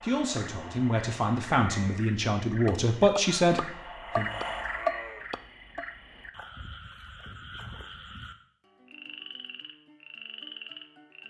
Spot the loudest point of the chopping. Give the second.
5 s.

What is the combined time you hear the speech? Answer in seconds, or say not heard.
4 s.